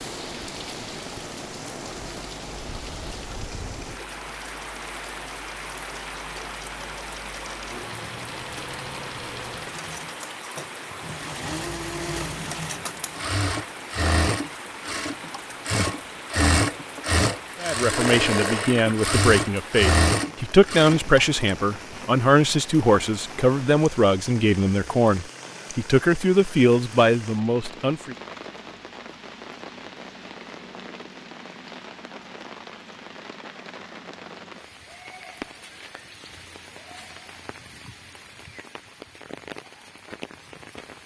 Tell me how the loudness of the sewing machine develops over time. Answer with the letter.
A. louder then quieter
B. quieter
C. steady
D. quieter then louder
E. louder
E.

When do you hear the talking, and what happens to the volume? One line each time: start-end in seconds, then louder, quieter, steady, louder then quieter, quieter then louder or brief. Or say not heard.
17.6-28.1 steady.